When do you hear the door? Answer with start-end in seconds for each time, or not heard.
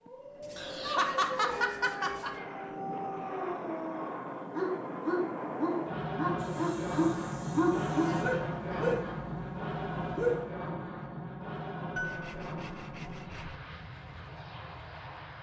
not heard.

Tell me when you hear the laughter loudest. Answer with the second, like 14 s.
1 s.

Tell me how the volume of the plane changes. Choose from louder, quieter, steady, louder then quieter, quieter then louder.
louder then quieter.